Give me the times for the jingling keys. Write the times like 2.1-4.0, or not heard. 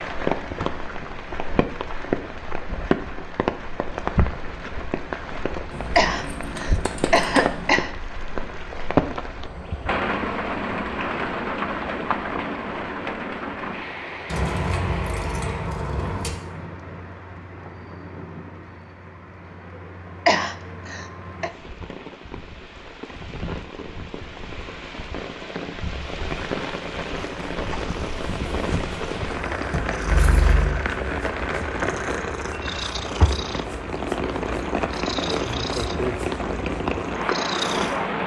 5.7-7.7, 14.2-16.3, 29.7-30.8.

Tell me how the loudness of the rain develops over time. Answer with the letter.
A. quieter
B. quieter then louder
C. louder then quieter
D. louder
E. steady
B.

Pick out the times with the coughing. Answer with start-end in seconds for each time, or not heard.
6.0-7.9, 20.2-21.5.